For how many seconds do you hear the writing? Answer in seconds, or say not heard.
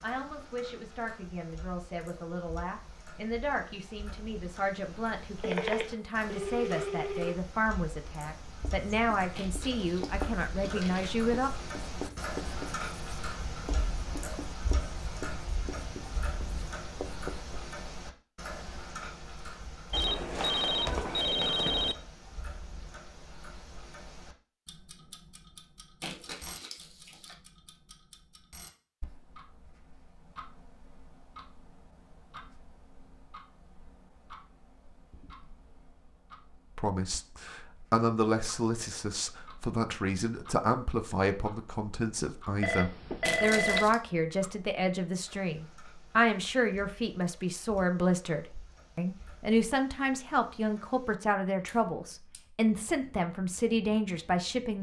9 s.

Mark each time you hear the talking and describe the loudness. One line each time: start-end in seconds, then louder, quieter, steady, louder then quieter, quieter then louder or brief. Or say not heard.
0.0-11.5 louder
36.8-54.7 steady.